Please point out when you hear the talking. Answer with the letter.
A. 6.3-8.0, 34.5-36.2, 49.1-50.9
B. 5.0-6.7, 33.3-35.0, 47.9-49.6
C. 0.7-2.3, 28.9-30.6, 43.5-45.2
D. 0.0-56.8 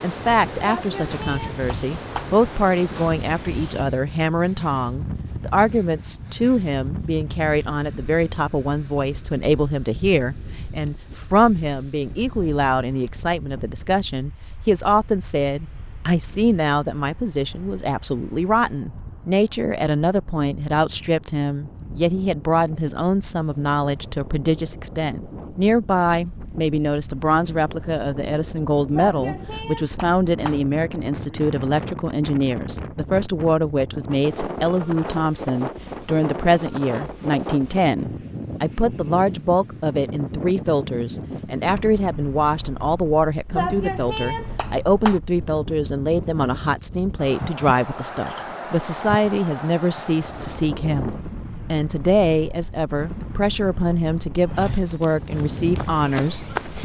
D.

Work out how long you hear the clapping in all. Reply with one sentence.
The clapping can be heard for 5 seconds in total.